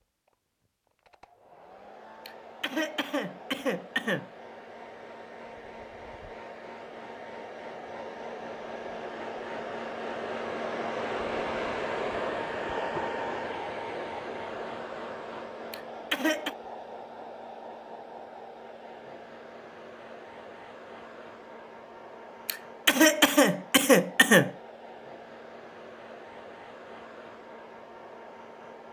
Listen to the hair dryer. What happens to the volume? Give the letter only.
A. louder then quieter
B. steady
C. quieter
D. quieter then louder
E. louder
A.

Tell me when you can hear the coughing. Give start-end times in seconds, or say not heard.
2.2-4.3, 15.7-16.6, 22.4-24.5.